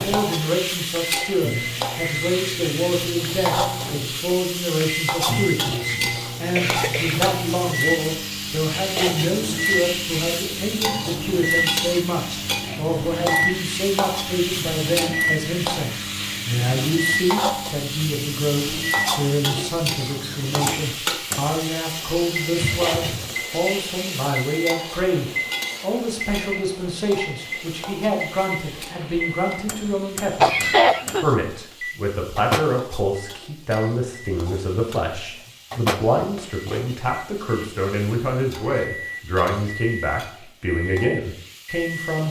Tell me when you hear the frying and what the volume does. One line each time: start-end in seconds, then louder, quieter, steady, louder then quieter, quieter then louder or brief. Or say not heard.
0.0-42.2 quieter.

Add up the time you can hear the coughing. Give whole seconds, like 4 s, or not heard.
3 s.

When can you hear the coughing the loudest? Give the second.
31 s.